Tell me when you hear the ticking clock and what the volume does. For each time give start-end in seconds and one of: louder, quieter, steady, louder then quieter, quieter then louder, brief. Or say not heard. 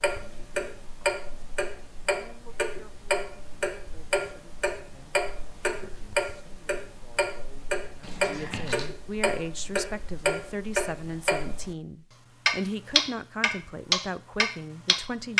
0.0-11.8 steady
12.4-15.3 brief.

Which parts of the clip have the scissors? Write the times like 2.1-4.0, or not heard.
8.0-8.9.